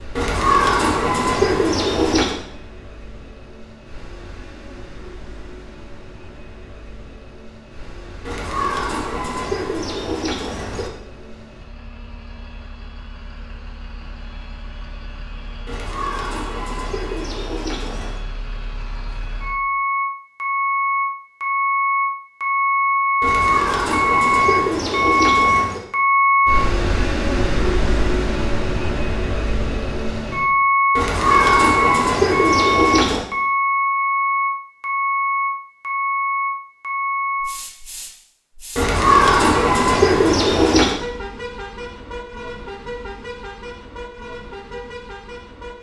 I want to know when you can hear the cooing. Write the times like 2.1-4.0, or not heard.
0.1-2.4, 8.2-10.9, 15.7-18.2, 23.2-25.9, 30.9-33.2, 38.8-41.0.